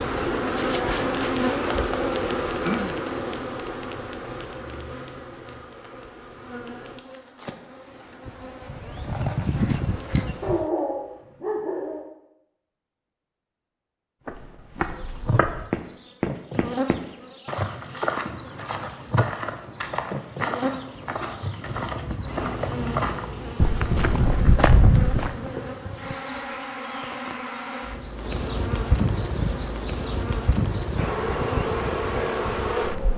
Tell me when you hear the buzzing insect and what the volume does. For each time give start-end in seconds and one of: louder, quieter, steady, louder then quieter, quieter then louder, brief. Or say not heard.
0.0-10.7 quieter then louder
14.8-33.1 louder.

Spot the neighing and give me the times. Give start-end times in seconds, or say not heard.
not heard.